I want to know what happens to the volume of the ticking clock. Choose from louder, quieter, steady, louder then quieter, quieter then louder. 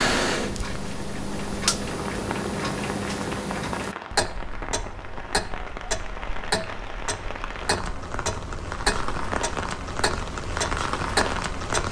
steady.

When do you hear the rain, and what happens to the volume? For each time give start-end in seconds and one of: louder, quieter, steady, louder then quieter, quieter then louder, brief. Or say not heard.
0.0-11.8 louder.